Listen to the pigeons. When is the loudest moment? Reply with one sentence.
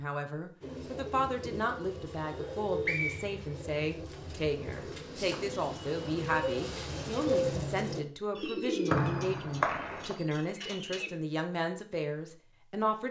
The volume of the pigeons peaks at 7 seconds.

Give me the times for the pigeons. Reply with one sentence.
You can hear the pigeons from 0.6 to 11.1 s.